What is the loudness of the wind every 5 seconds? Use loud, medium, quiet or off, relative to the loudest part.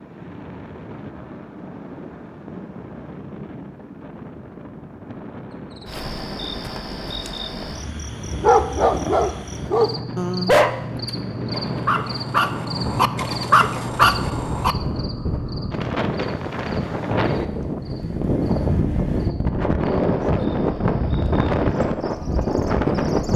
quiet, quiet, medium, loud, loud.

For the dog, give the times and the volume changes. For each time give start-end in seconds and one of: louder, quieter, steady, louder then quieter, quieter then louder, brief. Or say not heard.
8.4-14.8 quieter then louder.